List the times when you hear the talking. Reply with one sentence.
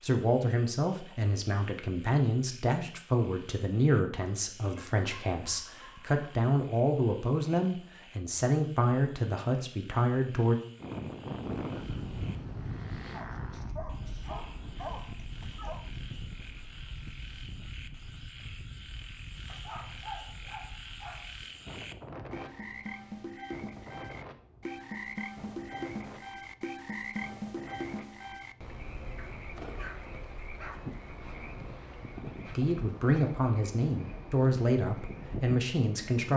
You can hear the talking from 0.0 to 10.6 s and from 32.5 to 36.3 s.